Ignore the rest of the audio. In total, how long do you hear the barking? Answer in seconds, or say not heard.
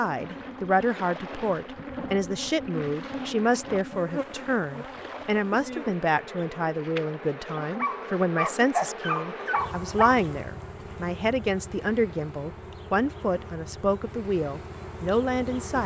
3 s.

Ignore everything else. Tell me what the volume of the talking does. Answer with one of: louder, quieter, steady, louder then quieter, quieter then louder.
steady.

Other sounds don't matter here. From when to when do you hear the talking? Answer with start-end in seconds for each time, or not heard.
0.0-15.8.